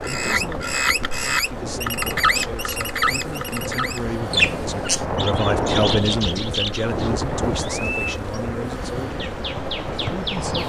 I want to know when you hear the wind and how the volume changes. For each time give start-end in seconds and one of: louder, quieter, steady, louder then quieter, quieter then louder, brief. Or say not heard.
0.0-10.6 louder then quieter.